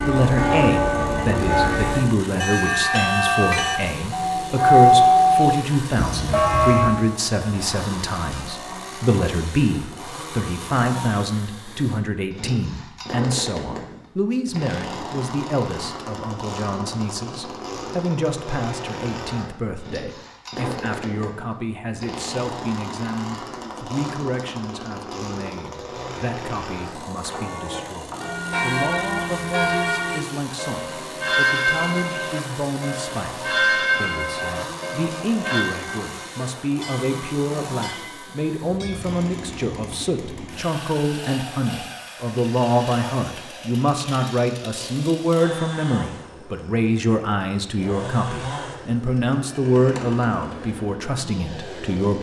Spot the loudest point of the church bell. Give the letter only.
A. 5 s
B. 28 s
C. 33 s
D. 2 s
A.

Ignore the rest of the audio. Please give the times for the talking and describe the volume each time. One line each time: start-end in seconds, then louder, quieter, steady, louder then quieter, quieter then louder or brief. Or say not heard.
0.0-52.1 quieter then louder.